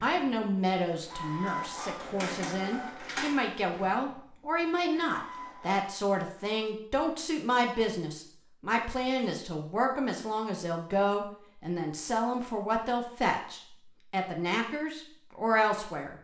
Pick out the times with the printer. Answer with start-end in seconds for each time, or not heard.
0.0-5.8.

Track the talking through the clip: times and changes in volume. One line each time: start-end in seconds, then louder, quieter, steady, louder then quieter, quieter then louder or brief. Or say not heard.
0.0-16.1 steady.